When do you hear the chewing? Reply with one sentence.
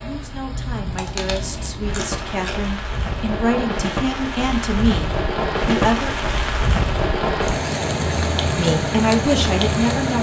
The chewing can be heard from 0.8 to 2.8 s.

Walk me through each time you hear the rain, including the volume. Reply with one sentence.
You can hear the rain from 0.0 to 10.1 s, getting louder.